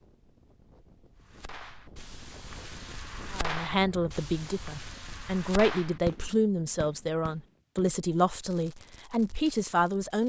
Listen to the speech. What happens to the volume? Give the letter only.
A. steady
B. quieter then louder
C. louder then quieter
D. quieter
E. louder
A.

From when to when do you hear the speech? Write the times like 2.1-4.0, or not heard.
3.3-10.2.